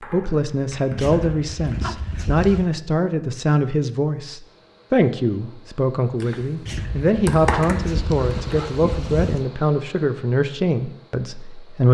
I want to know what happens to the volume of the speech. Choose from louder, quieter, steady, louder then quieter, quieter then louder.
steady.